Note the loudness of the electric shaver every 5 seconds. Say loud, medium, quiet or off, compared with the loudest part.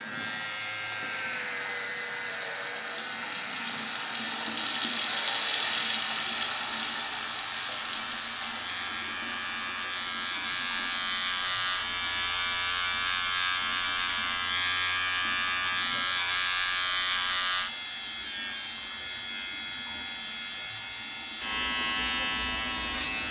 medium, medium, loud, loud, loud.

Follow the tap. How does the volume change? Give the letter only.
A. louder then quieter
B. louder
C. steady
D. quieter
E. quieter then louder
A.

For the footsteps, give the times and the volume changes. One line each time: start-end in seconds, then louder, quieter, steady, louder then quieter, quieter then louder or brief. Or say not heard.
not heard.